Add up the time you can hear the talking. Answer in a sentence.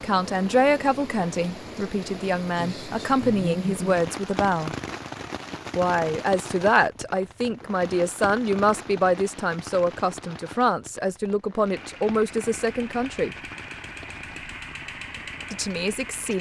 The talking can be heard for 13 seconds in total.